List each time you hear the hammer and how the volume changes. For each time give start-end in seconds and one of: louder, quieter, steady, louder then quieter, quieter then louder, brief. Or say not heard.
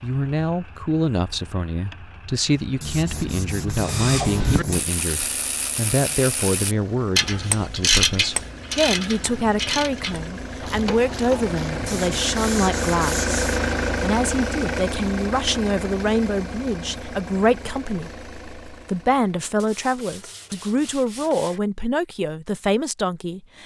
not heard.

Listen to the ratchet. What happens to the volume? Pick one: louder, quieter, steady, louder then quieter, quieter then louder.
louder then quieter.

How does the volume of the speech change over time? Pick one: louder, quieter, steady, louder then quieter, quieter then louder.
steady.